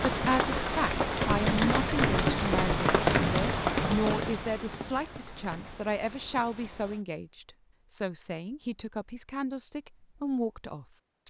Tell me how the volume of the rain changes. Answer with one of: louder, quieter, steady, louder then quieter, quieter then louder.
quieter.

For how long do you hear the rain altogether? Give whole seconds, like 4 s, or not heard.
7 s.